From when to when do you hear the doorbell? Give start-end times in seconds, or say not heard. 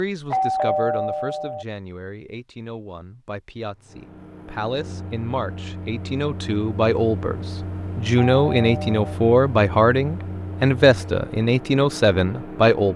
0.3-1.6, 8.2-9.1.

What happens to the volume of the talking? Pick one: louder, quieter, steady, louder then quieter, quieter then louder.
louder.